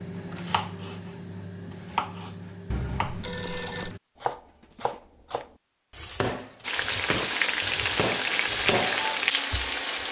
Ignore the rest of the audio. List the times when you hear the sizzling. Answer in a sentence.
The sizzling can be heard from 6.6 to 10.0 s.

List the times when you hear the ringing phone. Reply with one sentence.
You can hear the ringing phone from 2.7 to 4.0 s.